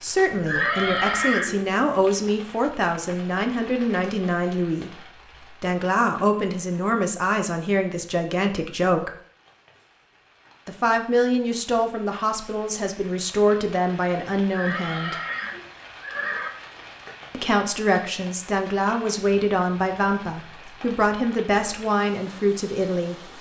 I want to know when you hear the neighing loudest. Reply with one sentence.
The volume of the neighing peaks at 1 second.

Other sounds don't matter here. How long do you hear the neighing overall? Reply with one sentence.
You can hear the neighing for 3 seconds altogether.